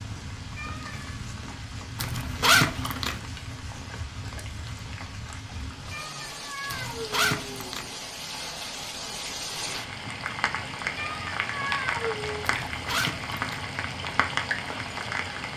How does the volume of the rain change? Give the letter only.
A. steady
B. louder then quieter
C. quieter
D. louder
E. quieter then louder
D.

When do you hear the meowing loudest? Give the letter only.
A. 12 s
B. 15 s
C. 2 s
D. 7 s
A.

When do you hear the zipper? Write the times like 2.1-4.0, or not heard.
2.0-3.2, 6.7-7.9, 12.4-13.7.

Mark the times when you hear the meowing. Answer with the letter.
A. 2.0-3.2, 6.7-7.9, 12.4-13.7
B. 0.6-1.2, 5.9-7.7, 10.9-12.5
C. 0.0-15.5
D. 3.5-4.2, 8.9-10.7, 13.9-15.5
B.